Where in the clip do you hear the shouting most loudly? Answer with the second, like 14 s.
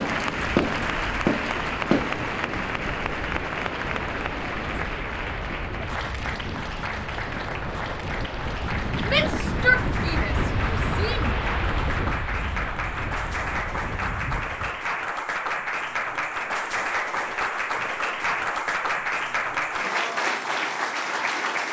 10 s.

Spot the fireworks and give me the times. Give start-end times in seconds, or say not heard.
0.0-2.2.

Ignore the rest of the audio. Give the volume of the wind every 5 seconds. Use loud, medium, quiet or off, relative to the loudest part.
loud, loud, loud, off, off.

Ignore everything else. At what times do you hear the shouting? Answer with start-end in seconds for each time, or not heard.
9.1-11.3.